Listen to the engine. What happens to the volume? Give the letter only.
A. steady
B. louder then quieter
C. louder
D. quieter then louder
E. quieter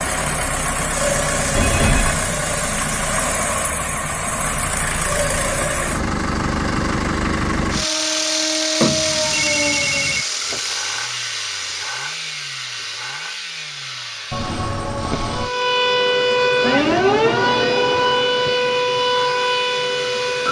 E.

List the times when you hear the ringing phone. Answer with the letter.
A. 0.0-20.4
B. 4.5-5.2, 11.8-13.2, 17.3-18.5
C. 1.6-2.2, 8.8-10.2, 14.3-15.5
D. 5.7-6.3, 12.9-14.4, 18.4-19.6
C.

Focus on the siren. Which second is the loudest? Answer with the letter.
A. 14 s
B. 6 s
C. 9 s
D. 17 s
D.